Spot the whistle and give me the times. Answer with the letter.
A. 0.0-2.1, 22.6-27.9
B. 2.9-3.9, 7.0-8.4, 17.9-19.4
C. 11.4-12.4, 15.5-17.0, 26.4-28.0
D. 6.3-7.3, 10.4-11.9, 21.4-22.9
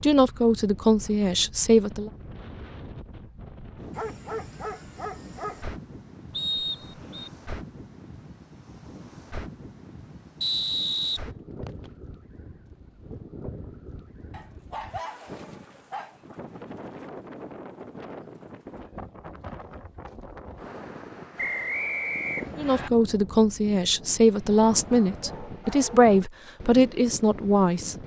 D.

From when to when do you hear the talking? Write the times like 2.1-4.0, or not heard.
0.0-2.1, 22.6-27.9.